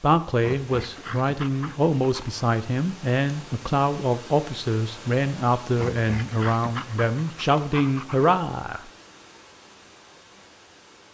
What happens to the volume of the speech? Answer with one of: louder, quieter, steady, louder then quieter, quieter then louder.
steady.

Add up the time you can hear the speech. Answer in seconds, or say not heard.
9 s.